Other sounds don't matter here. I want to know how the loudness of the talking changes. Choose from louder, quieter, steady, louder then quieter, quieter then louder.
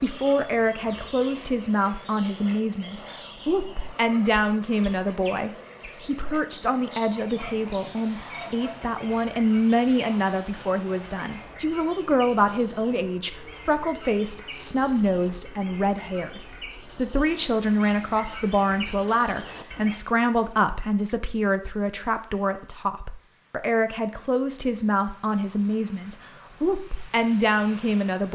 steady.